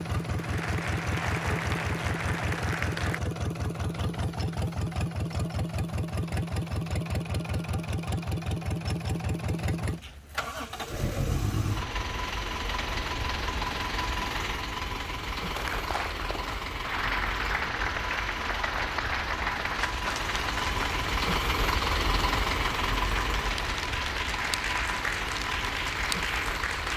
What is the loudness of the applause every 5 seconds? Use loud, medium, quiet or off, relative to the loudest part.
loud, off, off, loud, loud, loud.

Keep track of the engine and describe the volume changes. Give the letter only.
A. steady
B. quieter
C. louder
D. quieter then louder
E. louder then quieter
A.